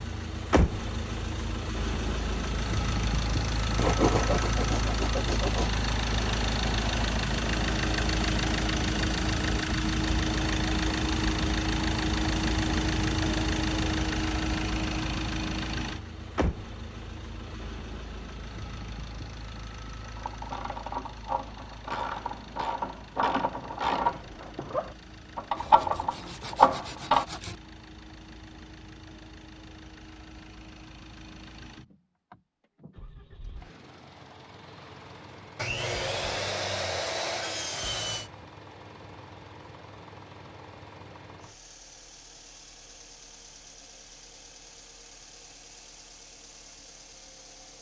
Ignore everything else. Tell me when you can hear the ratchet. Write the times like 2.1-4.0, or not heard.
20.1-27.2.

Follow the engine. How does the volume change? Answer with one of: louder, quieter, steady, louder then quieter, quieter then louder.
quieter.